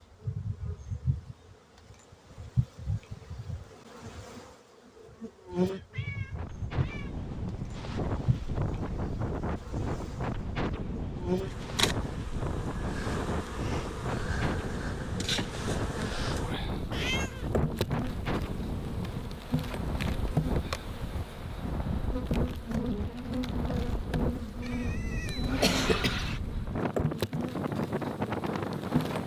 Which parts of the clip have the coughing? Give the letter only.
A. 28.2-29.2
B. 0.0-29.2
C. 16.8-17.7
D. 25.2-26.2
D.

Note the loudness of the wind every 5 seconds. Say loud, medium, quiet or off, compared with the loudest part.
off, loud, loud, loud, loud, loud.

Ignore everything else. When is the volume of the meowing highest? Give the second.
17 s.